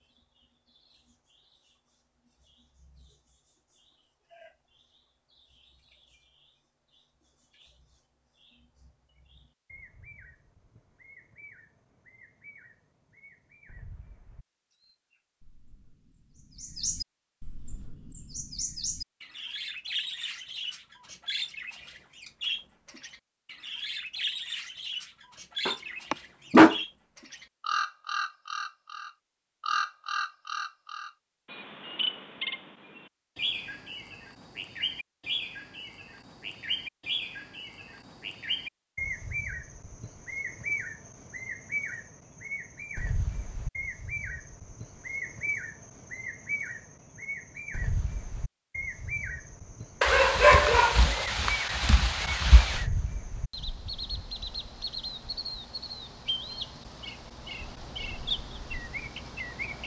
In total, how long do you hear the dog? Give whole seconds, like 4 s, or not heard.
4 s.